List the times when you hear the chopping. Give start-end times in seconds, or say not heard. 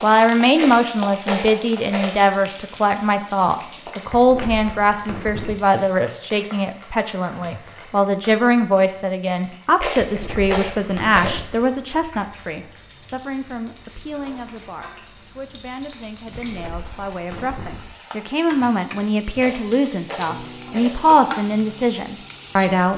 not heard.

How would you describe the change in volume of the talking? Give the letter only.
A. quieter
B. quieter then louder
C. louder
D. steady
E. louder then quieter
B.